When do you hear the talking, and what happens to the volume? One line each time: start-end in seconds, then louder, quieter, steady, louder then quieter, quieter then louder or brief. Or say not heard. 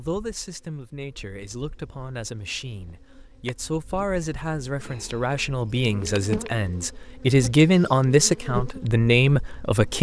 0.0-9.9 louder.